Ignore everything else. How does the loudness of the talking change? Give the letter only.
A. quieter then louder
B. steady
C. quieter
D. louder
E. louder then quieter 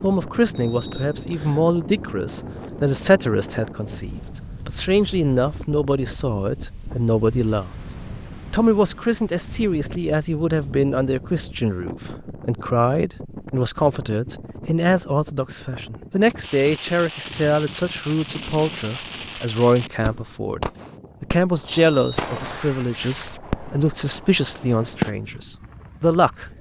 B.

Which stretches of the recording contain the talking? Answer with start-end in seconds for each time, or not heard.
0.0-7.7, 8.5-26.4.